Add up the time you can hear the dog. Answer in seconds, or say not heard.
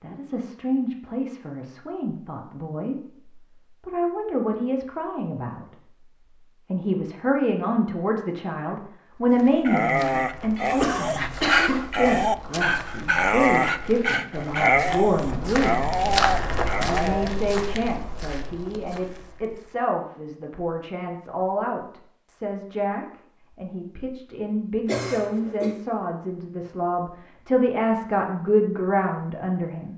8 s.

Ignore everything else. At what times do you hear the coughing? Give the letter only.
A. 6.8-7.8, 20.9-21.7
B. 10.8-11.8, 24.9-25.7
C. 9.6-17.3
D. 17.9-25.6
B.